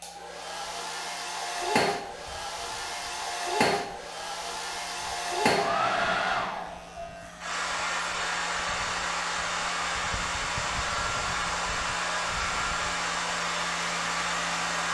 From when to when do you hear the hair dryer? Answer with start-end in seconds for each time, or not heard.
0.0-14.8.